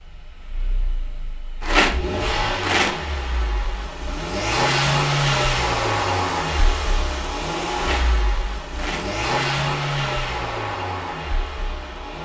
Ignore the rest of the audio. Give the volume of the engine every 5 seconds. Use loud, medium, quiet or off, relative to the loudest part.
loud, loud, medium.